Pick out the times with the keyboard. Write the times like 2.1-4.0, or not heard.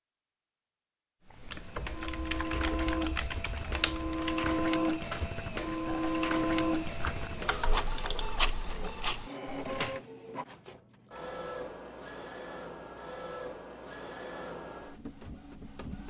1.2-9.8.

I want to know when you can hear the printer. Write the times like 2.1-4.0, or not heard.
1.5-16.0.